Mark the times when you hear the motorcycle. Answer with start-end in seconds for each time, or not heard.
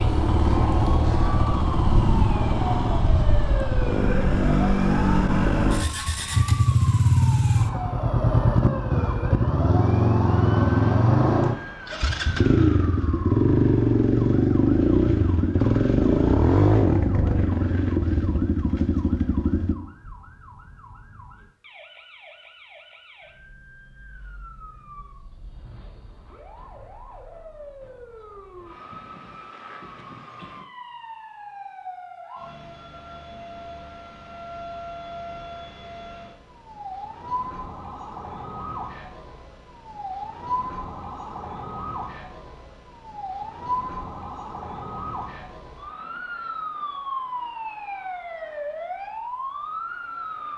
0.0-19.8.